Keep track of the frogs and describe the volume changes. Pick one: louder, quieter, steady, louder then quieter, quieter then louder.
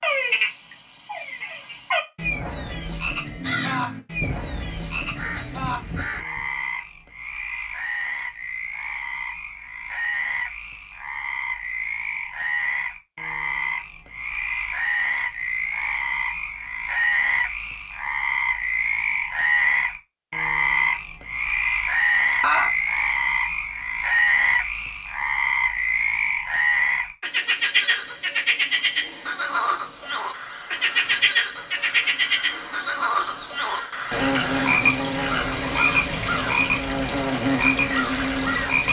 louder.